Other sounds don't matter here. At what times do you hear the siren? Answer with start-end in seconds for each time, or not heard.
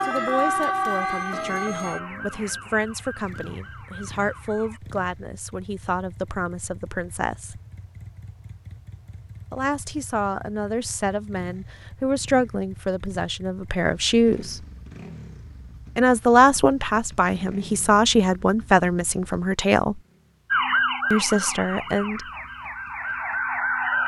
0.0-4.8, 20.5-24.0.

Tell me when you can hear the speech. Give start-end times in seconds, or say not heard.
0.0-7.6, 9.5-14.6, 15.9-20.0, 21.1-22.2.